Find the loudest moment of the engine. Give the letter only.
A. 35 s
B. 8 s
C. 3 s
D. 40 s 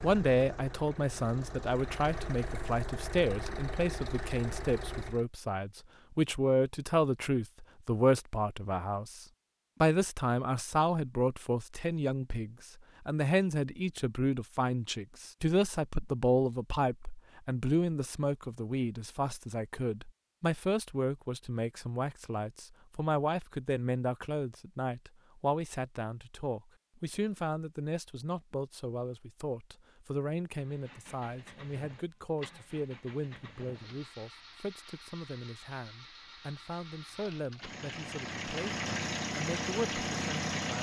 D.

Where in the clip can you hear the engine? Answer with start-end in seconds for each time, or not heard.
0.0-5.2, 30.6-40.7.